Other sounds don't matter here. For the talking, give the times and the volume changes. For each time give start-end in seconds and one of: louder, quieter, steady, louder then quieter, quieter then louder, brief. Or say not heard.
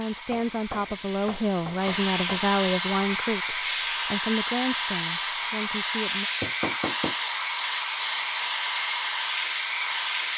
0.0-6.3 quieter.